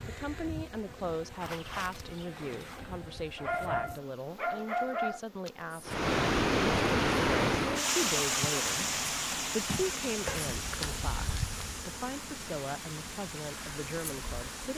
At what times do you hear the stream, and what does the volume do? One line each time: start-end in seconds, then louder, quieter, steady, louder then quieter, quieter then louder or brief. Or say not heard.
5.8-14.7 quieter.